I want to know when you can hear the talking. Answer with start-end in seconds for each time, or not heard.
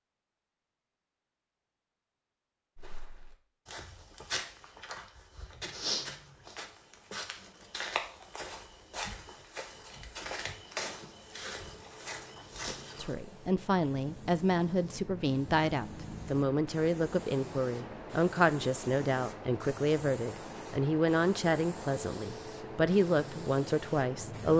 12.9-24.5.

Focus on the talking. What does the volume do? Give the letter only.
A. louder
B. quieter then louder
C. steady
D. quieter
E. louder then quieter
C.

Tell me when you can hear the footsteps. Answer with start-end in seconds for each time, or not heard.
2.8-13.2.